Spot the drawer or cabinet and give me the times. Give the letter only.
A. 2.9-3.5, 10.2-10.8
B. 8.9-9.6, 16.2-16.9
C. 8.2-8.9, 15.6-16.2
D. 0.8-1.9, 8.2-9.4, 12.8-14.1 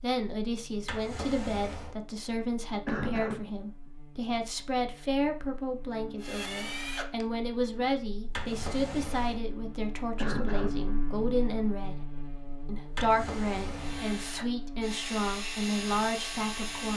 D.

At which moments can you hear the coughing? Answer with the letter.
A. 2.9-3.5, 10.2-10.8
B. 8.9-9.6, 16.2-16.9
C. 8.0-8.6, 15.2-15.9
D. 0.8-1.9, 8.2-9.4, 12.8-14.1
A.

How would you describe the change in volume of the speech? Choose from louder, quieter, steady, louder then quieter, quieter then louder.
steady.